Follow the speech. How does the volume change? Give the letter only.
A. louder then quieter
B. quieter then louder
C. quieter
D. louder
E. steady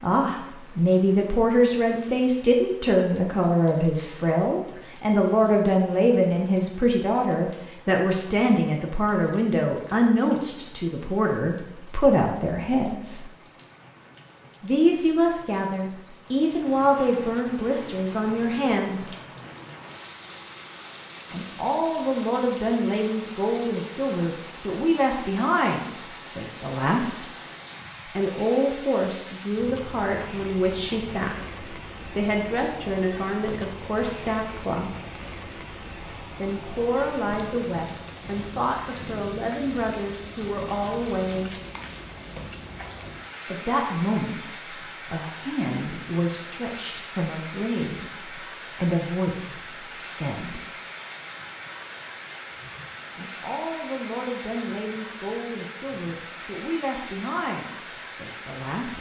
C.